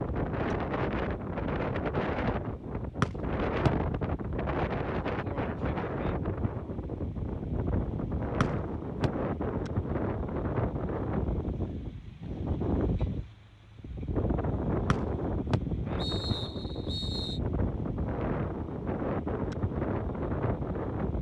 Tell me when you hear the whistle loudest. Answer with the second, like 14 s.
3 s.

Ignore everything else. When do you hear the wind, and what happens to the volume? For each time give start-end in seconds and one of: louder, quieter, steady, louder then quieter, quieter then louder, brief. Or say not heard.
0.0-21.1 steady.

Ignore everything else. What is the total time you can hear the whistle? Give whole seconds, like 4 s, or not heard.
4 s.